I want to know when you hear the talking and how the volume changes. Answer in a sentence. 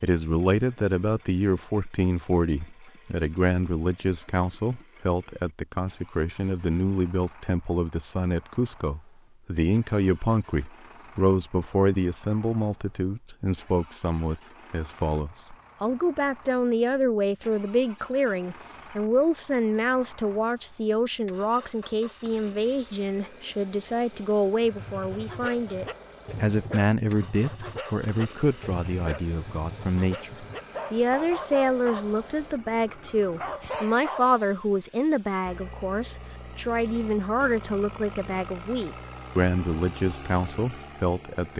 You can hear the talking from 0.0 to 41.5 s, at a steady volume.